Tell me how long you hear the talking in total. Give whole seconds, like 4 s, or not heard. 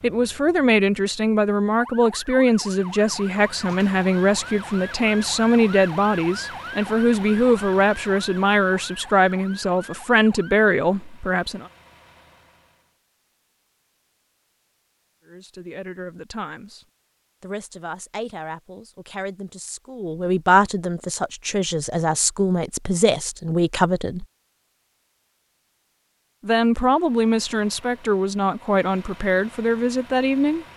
25 s.